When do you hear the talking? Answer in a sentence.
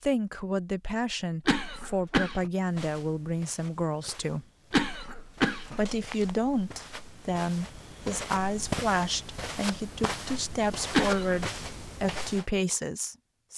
You can hear the talking from 0.0 to 4.5 s and from 5.8 to 13.5 s.